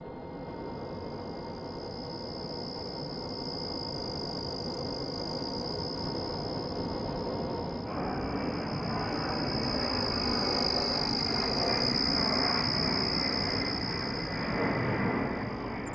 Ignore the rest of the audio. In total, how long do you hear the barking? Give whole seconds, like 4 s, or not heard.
not heard.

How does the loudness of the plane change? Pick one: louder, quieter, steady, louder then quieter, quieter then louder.
louder.